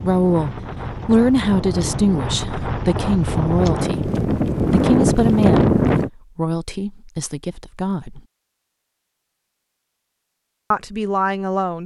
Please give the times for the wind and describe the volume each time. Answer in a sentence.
The wind can be heard from 0.0 to 6.1 s, getting louder.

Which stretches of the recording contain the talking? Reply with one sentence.
You can hear the talking from 0.0 to 8.2 s and from 10.7 to 11.8 s.